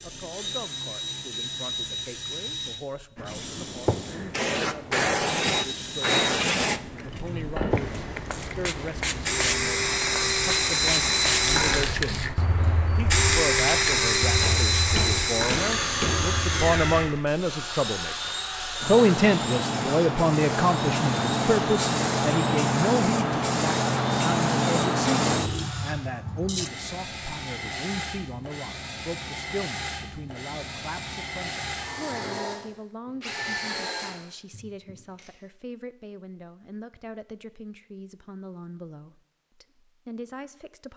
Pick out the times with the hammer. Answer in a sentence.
You can hear the hammer from 14.4 to 16.2 s.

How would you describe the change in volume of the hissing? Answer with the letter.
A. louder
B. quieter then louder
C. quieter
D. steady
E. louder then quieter
B.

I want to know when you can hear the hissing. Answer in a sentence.
You can hear the hissing from 3.1 to 26.7 s.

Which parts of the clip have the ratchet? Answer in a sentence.
The ratchet can't be heard in this clip.